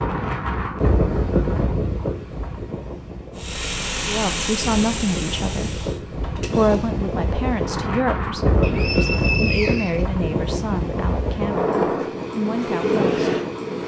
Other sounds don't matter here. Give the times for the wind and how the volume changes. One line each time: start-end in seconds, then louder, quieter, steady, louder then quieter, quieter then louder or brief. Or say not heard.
0.0-13.8 quieter then louder.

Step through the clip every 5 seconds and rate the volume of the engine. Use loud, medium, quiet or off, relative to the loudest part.
loud, medium, off.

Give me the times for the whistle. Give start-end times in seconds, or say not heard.
8.6-10.1.